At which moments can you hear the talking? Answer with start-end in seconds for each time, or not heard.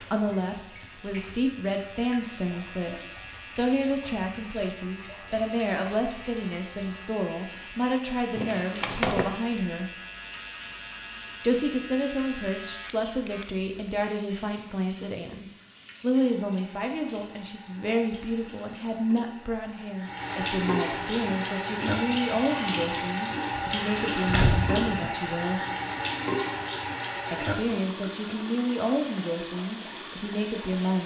0.0-9.9, 11.4-25.6, 27.3-31.0.